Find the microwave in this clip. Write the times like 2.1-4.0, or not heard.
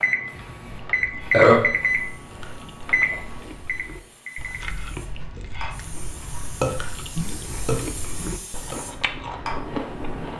0.0-4.7.